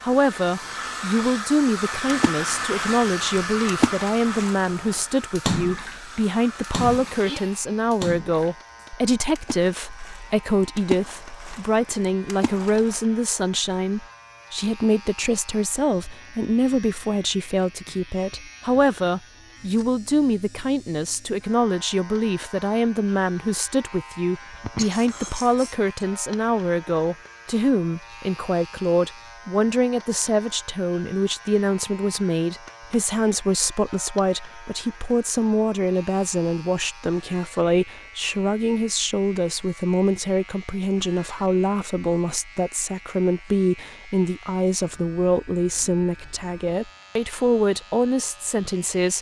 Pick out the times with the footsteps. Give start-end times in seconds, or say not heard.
not heard.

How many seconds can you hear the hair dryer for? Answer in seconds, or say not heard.
8 s.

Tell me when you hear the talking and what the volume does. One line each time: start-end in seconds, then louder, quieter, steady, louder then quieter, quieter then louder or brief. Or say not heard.
0.0-49.1 steady.